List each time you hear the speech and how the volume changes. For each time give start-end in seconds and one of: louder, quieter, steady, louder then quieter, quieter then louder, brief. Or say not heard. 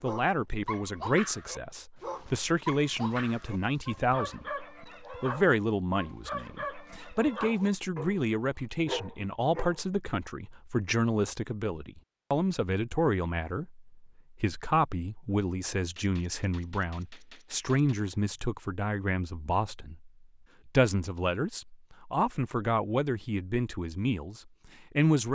0.0-25.3 steady.